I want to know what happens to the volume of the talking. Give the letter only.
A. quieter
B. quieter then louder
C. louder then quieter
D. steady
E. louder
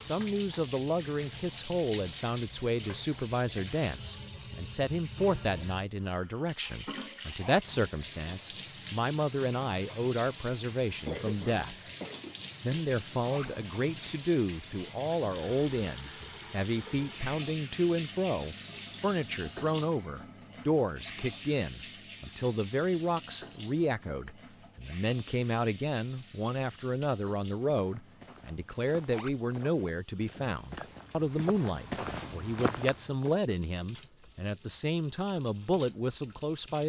D.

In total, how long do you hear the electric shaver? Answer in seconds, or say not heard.
not heard.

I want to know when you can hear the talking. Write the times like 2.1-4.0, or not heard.
0.0-11.8, 12.6-36.8.